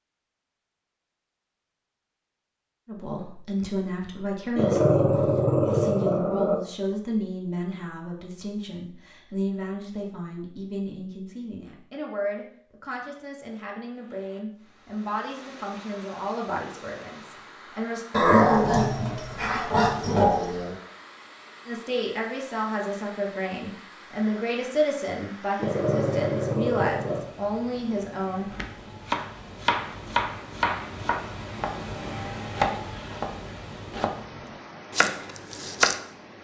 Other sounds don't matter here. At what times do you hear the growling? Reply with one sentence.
The growling can be heard from 4.5 to 6.5 s, from 18.1 to 20.8 s and from 25.6 to 27.2 s.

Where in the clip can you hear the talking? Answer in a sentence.
You can hear the talking from 2.9 to 18.1 s and from 21.6 to 28.5 s.